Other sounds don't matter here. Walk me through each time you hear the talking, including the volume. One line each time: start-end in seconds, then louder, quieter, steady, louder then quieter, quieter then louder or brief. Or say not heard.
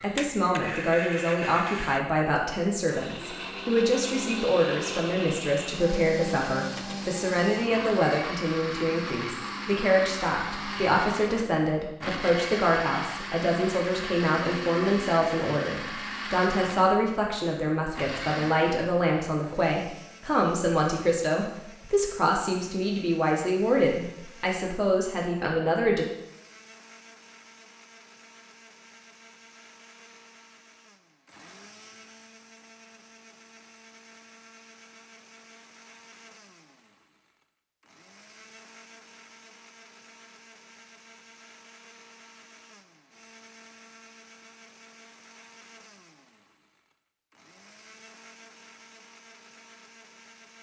0.0-26.1 steady.